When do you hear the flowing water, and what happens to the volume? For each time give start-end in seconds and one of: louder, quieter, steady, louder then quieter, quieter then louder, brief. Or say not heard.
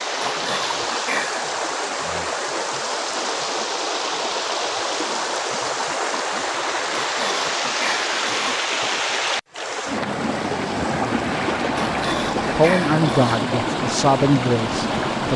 0.0-15.3 steady.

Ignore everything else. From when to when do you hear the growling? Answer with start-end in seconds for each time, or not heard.
0.2-1.4, 6.9-8.7, 11.8-13.3.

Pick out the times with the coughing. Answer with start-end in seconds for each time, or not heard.
not heard.